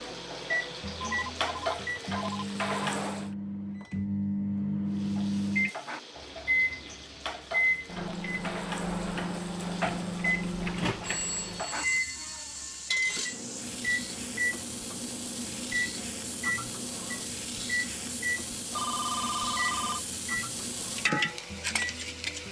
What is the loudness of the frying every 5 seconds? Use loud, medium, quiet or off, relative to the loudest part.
loud, medium, medium, medium, loud.